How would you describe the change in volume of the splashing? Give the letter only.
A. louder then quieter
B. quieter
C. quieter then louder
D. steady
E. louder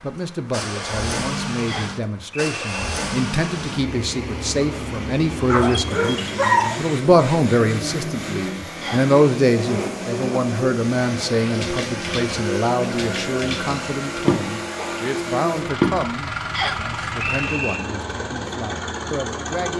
A.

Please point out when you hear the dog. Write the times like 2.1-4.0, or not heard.
5.5-6.8.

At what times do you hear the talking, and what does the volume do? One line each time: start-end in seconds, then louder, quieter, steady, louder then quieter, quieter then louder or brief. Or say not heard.
0.0-19.7 louder then quieter.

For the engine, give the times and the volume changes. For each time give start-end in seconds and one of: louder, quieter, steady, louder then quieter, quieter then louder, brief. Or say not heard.
0.0-19.7 steady.